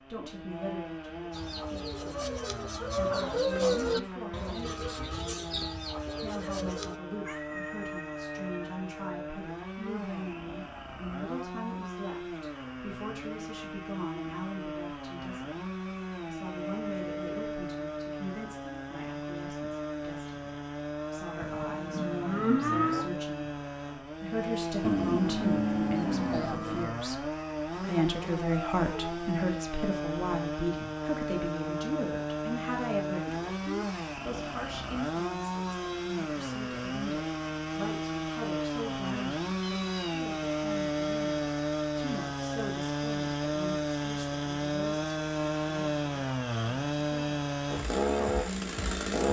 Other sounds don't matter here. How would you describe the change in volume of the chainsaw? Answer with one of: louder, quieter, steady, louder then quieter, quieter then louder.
louder.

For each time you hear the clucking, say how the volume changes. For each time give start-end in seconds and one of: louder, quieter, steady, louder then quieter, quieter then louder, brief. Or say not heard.
1.3-7.0 louder then quieter.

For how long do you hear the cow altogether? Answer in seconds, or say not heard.
4 s.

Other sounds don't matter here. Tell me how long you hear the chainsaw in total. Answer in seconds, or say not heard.
49 s.